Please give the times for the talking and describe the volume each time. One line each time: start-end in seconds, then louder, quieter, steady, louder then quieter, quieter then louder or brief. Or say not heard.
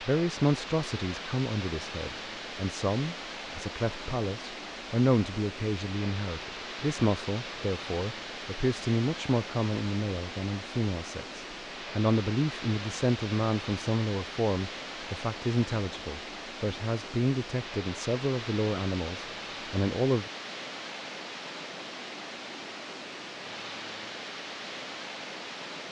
0.0-20.3 steady.